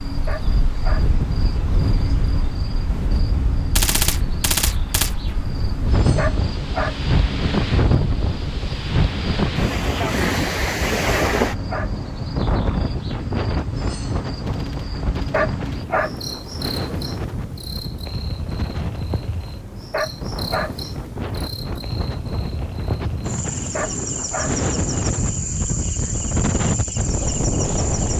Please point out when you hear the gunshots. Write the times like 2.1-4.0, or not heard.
3.8-5.2, 14.4-15.8.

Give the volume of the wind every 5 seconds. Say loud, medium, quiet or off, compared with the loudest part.
medium, loud, loud, medium, medium, loud.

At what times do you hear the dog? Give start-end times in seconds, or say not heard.
0.2-1.1, 6.2-7.0, 11.1-11.9, 15.3-16.1, 19.9-20.7, 23.7-24.6.